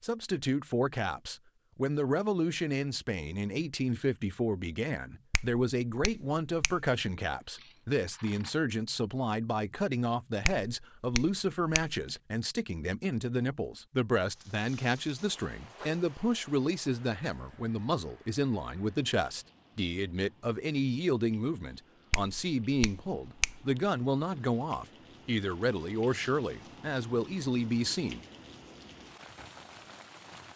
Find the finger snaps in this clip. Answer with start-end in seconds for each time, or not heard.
5.3-6.8, 10.4-12.2, 22.1-23.6.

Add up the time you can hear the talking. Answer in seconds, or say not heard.
28 s.